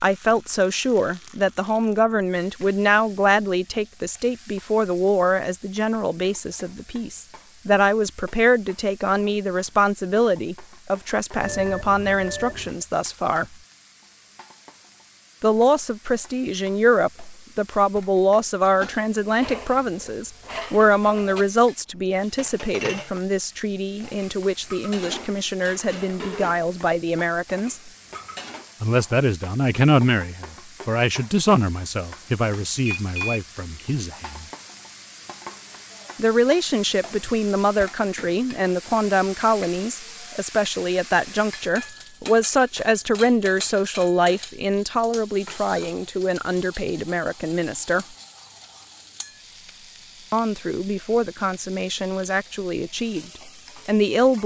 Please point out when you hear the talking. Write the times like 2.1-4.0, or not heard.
0.0-13.4, 15.4-27.9, 28.8-34.5, 36.1-48.0, 50.3-53.2, 53.9-54.4.